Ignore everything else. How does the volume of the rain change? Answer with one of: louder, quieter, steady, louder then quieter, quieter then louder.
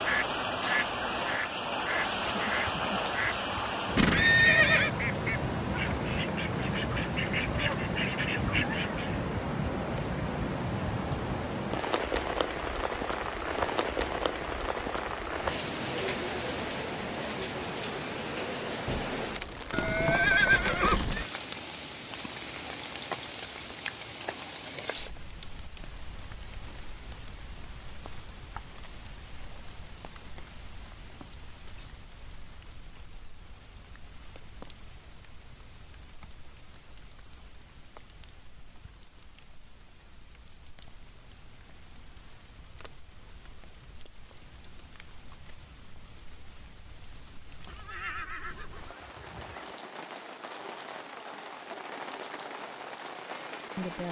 quieter then louder.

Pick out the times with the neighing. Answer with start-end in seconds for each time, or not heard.
4.0-4.9, 19.7-21.2, 47.6-49.8.